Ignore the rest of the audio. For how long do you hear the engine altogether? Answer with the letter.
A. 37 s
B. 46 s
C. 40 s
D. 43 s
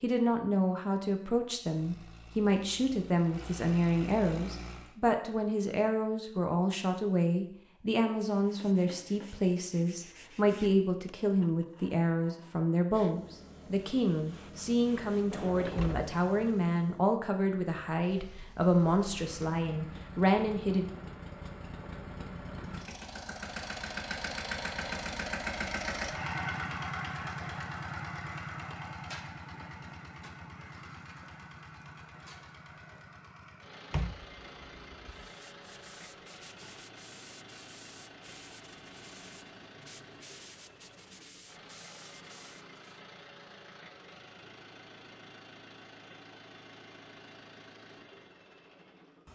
C.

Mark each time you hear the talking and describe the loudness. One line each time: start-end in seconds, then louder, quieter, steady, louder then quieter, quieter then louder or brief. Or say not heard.
0.0-20.9 steady.